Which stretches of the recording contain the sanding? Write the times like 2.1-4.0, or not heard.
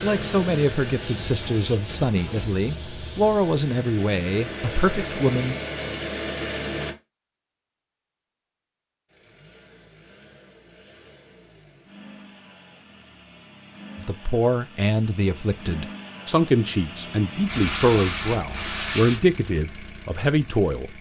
1.0-2.6, 17.4-19.2.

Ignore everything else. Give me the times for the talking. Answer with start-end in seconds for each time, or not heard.
0.0-5.5, 13.9-20.9.